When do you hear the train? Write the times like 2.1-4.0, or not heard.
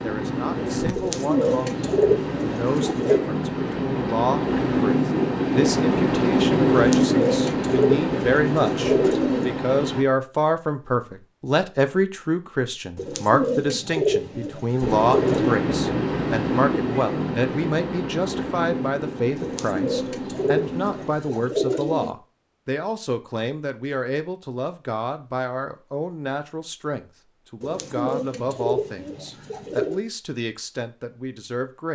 0.0-10.1, 14.8-21.1.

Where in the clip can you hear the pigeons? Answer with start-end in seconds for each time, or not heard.
0.9-3.2, 6.7-9.6, 12.9-15.7, 19.4-22.1, 27.6-30.0.